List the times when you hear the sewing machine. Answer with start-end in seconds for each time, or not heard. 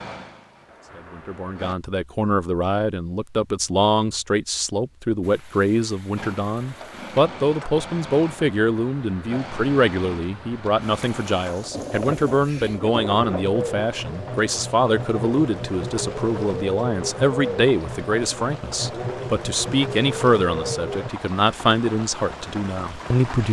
0.0-1.8, 6.2-21.1.